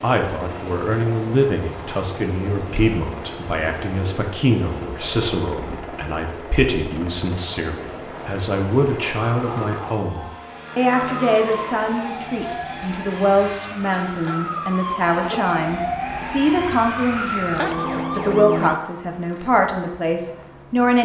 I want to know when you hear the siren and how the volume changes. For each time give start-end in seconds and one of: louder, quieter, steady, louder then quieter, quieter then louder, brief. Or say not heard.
9.3-18.8 louder.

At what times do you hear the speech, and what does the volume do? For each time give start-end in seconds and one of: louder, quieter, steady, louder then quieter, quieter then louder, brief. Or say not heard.
0.0-21.0 steady.